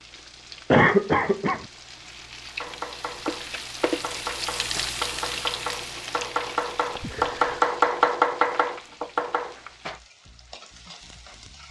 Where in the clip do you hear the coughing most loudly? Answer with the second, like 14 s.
1 s.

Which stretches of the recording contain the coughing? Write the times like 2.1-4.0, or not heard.
0.7-1.6, 6.9-7.7.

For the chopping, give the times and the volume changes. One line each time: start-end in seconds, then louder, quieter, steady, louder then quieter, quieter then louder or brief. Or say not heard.
2.6-9.6 louder.